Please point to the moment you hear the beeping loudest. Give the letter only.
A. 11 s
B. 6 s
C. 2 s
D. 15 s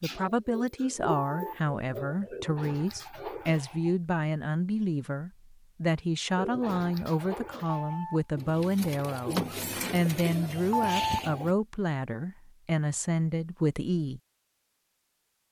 A.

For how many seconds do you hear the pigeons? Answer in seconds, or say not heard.
9 s.